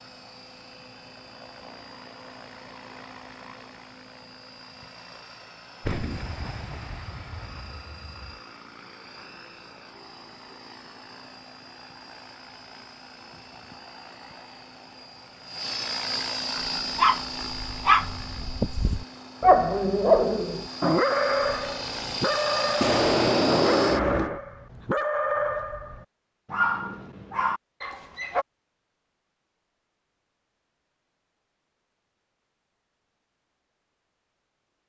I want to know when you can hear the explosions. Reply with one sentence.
The explosions can be heard from 5.8 to 8.3 s and from 22.8 to 24.4 s.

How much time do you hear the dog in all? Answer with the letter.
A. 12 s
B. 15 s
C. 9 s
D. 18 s
A.